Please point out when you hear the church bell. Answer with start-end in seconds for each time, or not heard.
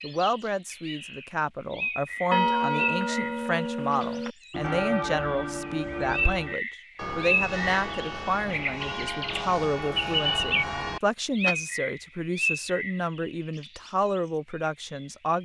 2.3-11.6.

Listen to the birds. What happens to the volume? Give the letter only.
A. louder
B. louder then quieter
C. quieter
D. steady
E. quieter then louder
B.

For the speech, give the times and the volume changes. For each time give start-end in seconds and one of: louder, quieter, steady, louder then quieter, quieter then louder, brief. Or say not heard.
0.0-15.4 steady.